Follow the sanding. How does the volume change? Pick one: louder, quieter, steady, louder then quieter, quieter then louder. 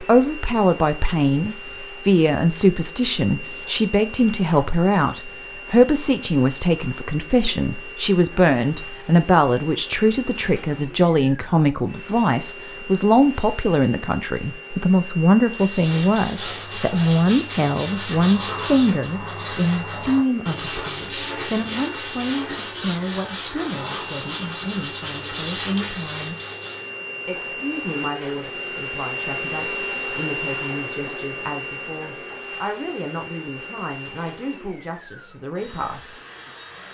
steady.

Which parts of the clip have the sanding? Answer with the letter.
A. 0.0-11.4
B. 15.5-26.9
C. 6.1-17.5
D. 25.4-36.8
B.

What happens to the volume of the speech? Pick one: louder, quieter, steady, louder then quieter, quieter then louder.
quieter.